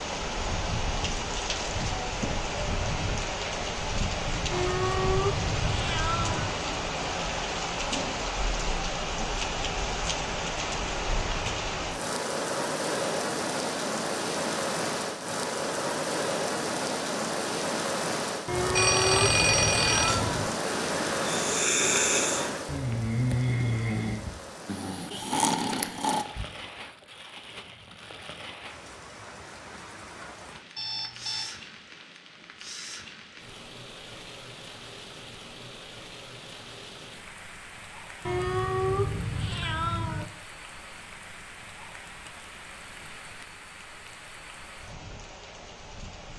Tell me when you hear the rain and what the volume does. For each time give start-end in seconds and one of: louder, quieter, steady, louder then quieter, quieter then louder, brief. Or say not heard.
0.0-46.3 quieter.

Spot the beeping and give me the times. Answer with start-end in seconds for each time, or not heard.
18.8-20.2, 30.8-31.5.